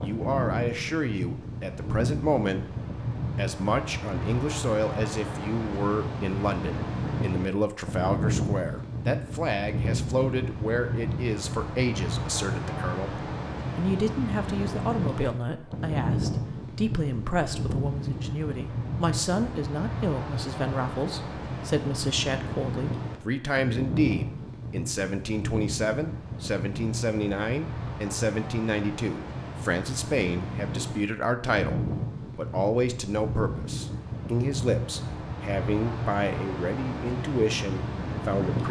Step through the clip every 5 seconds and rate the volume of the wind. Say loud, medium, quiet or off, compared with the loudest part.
loud, loud, loud, loud, loud, medium, loud, loud.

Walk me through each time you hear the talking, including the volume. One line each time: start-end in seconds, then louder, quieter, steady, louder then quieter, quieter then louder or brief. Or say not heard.
0.0-2.8 brief
3.4-38.6 steady.